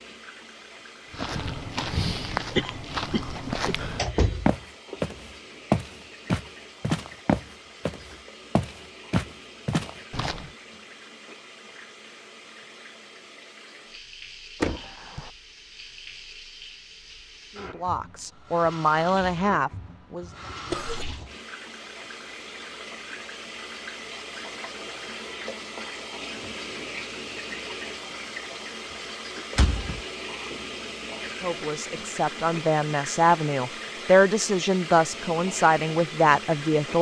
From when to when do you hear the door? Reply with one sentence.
You can hear the door from 3.4 to 5.0 s, from 14.6 to 15.3 s and from 29.6 to 30.0 s.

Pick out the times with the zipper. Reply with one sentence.
The zipper can't be heard in this clip.